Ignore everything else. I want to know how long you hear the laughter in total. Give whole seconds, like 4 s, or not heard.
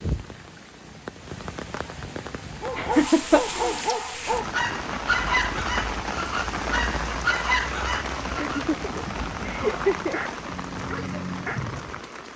3 s.